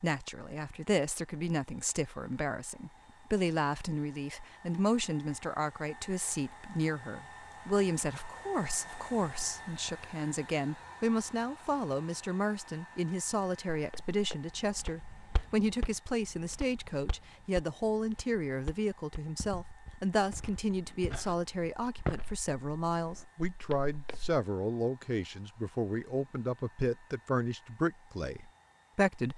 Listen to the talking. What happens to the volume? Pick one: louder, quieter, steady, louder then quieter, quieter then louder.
steady.